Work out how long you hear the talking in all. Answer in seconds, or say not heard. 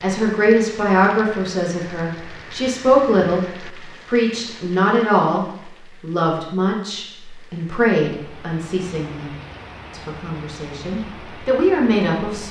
12 s.